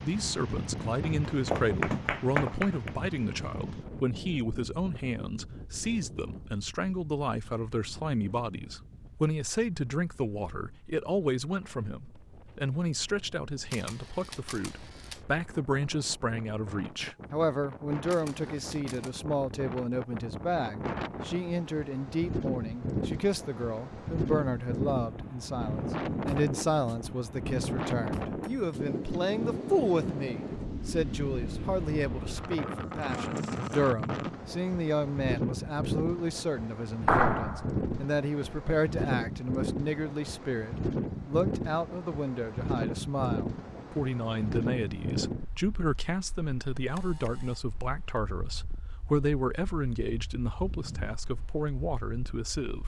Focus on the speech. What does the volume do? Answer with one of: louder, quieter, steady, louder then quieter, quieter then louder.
steady.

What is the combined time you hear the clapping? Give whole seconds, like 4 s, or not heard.
3 s.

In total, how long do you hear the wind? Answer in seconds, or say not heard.
53 s.